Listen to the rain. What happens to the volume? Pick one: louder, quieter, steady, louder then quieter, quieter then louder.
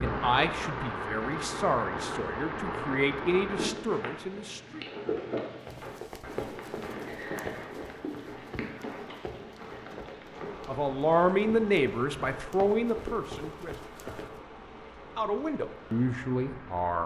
quieter.